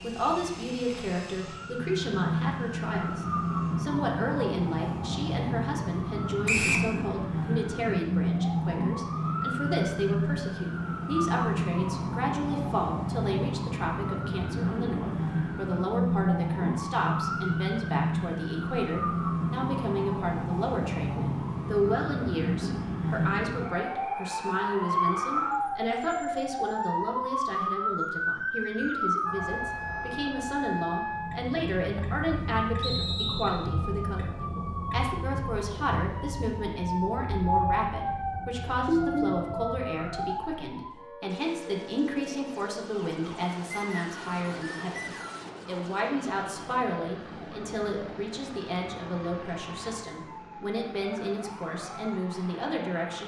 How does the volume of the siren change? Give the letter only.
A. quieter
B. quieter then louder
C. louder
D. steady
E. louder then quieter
A.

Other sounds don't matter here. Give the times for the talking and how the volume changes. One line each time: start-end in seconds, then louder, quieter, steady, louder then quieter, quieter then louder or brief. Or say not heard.
0.0-53.2 steady.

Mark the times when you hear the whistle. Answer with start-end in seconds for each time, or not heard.
6.5-6.9, 32.8-33.6, 43.7-45.5.